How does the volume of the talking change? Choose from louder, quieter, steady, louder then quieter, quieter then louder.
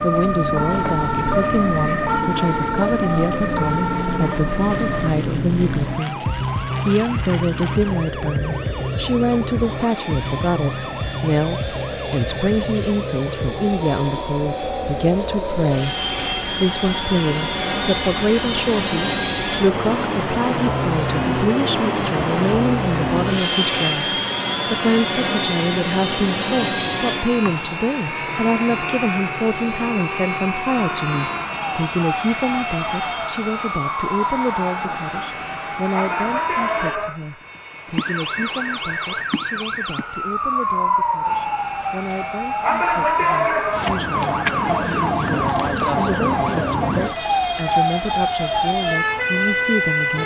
quieter.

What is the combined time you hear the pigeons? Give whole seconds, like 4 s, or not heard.
not heard.